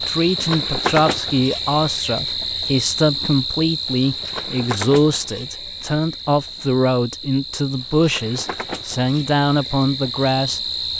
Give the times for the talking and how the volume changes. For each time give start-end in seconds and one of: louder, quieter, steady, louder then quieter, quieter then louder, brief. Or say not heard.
0.0-10.9 steady.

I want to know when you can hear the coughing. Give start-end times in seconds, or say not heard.
not heard.